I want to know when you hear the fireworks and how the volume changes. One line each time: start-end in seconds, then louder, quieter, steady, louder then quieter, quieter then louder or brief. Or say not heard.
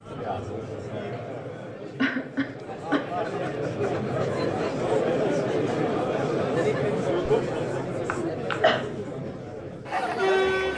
not heard.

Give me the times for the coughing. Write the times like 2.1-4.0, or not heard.
1.9-3.0, 8.1-8.8.